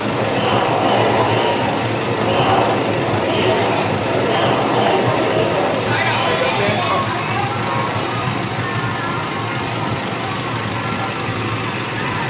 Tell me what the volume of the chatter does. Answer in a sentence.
The loudness of the chatter goes down.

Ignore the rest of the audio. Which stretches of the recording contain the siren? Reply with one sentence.
You can't hear the siren here.